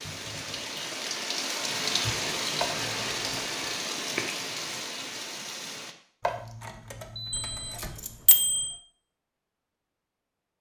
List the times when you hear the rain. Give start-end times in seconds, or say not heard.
0.0-6.0.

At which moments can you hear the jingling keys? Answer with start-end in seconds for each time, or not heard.
2.6-3.5, 6.2-8.2.